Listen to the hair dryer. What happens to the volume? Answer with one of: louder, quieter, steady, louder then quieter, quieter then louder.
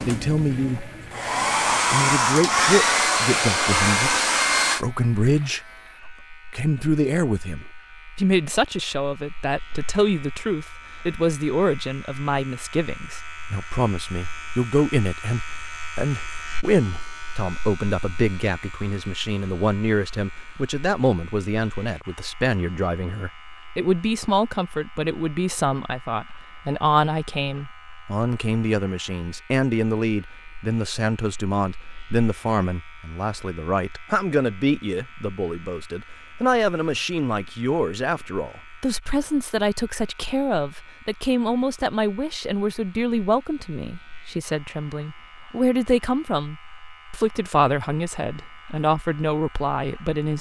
louder.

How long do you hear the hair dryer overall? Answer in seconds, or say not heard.
5 s.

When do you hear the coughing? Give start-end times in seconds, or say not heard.
not heard.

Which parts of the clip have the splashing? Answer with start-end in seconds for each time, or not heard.
not heard.